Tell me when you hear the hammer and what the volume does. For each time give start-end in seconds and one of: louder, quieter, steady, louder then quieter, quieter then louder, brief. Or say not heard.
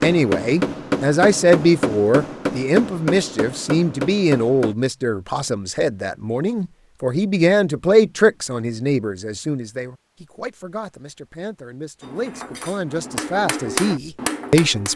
0.0-4.8 steady
12.0-14.9 brief.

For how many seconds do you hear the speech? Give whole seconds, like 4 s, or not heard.
15 s.